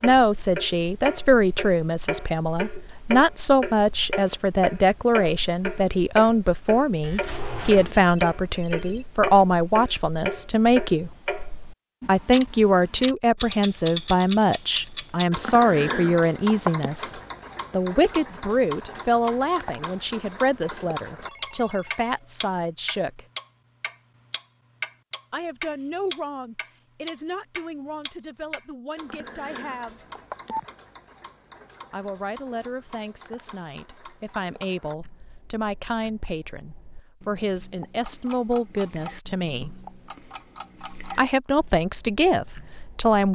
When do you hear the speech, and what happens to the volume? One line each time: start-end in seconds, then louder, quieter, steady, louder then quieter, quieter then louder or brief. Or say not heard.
0.0-11.1 steady
12.1-23.2 quieter
25.3-30.1 quieter
31.9-39.8 louder
41.0-43.3 brief.